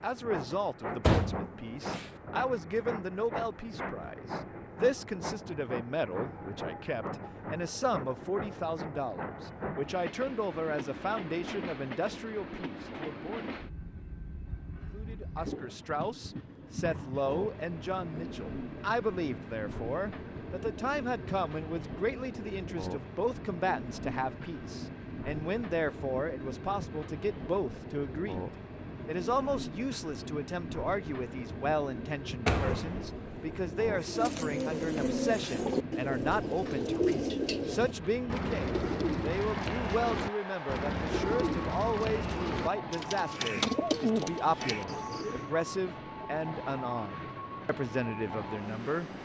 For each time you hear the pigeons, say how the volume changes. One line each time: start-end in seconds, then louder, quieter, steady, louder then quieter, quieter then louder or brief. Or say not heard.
34.0-45.5 steady.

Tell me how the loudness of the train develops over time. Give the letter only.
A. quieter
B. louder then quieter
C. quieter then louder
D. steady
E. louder
D.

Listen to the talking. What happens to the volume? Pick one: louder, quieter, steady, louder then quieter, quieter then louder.
steady.